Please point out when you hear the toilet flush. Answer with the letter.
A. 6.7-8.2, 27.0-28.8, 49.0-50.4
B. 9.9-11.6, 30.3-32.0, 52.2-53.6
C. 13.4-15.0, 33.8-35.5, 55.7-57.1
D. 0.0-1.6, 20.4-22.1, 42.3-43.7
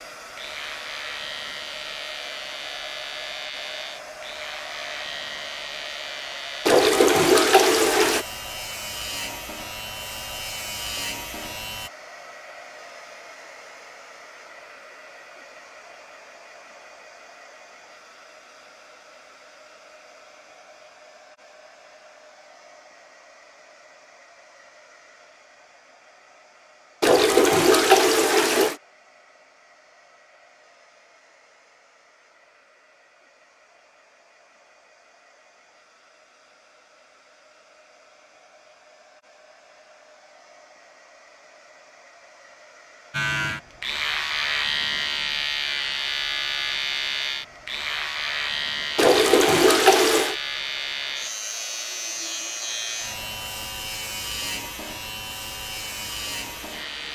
A.